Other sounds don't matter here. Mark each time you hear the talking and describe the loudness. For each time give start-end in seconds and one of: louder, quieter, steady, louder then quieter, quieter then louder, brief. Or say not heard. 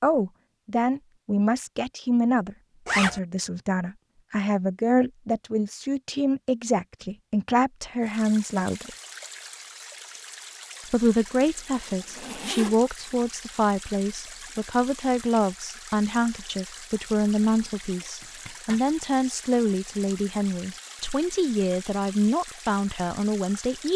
0.0-8.9 steady
10.9-23.9 steady.